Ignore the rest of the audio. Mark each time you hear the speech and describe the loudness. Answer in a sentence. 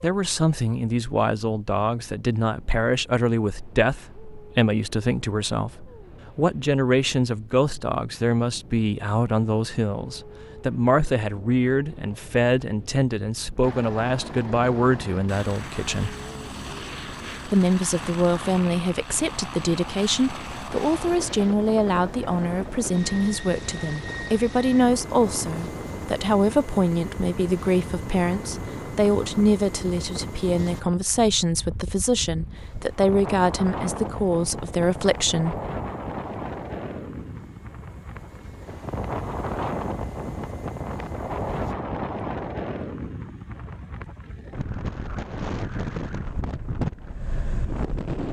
The speech can be heard from 0.0 to 16.1 s, at a steady volume; and from 17.4 to 35.5 s, at a steady volume.